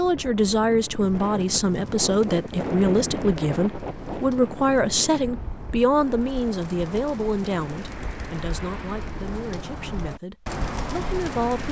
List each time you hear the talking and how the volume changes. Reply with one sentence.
The talking can be heard from 0.0 to 11.6 s, getting quieter.